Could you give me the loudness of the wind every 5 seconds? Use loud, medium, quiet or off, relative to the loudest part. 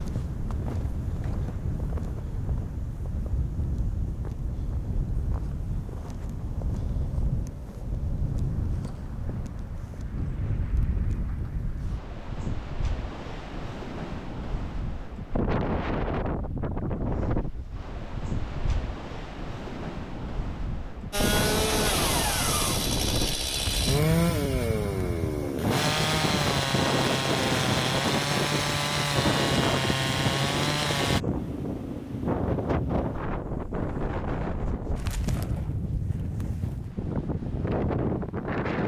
medium, medium, medium, loud, loud, loud, loud, loud.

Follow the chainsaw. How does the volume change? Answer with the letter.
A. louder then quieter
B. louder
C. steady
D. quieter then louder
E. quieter
C.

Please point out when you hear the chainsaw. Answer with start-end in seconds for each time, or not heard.
21.1-31.2.